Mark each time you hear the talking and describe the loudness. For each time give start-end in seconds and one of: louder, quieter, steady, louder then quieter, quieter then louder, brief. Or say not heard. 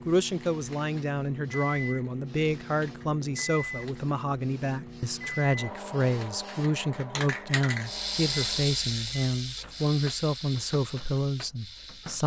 0.1-12.2 steady.